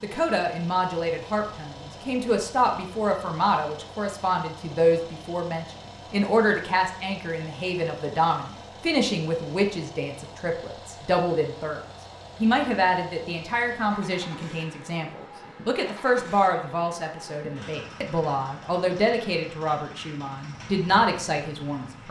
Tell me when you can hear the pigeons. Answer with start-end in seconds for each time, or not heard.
not heard.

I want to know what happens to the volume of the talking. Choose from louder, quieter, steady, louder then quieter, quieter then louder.
steady.